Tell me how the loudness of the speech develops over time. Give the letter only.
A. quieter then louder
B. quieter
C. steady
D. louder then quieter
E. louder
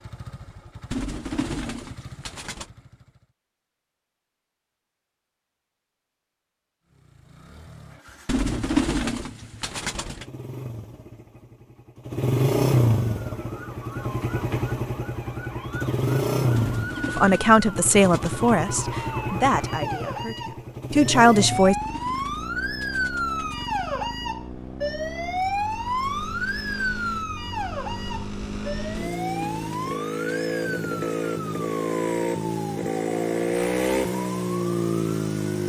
A.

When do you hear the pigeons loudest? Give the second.
9 s.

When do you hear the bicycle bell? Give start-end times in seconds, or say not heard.
not heard.